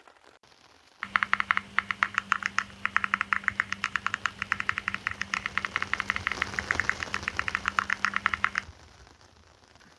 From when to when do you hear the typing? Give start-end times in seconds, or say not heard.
1.0-8.7.